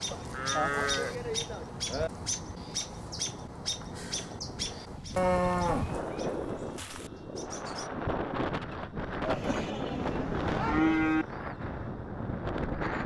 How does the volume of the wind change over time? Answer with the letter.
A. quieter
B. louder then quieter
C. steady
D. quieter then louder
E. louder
E.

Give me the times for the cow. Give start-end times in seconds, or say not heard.
0.1-2.1, 5.2-7.1, 9.2-11.2.